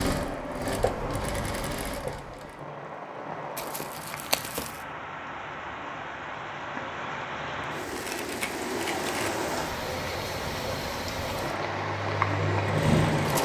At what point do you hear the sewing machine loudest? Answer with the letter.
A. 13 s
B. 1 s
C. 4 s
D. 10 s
A.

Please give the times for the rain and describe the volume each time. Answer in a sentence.
The rain can be heard from 0.1 to 13.3 s, getting louder.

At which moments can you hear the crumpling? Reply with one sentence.
You can hear the crumpling from 3.5 to 4.8 s and from 7.8 to 9.4 s.